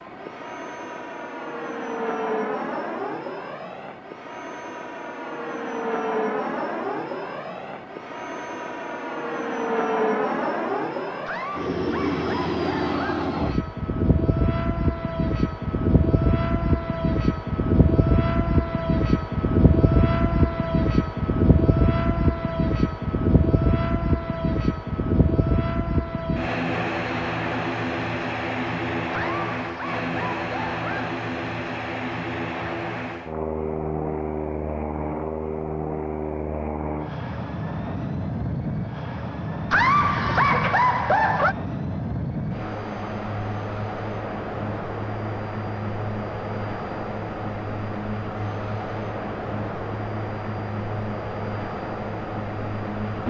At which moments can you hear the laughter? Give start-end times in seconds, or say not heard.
11.2-13.2, 29.1-31.1, 39.7-41.5.